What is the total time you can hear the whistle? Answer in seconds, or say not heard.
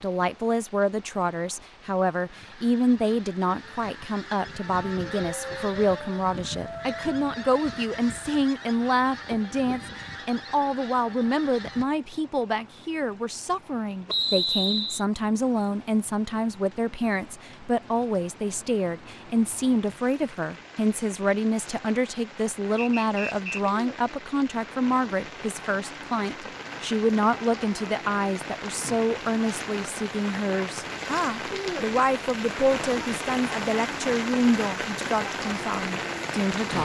2 s.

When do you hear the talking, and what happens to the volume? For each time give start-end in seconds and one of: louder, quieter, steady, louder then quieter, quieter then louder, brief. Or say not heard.
0.0-36.7 steady.